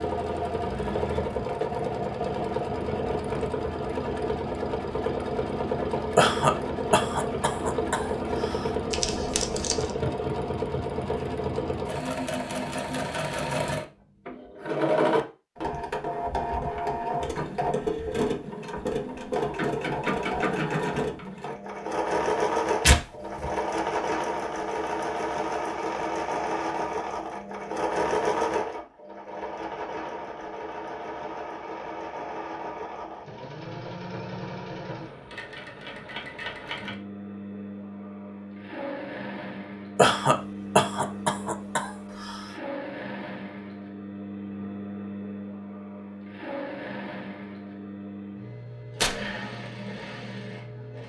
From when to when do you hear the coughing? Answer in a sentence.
You can hear the coughing from 6.2 to 8.7 s and from 40.0 to 42.5 s.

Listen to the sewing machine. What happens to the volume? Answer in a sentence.
The volume of the sewing machine goes down.